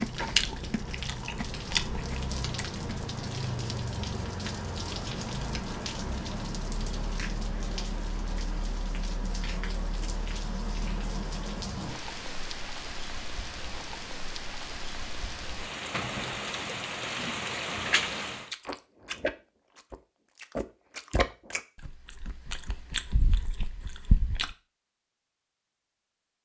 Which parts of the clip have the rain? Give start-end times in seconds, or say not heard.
0.0-18.5.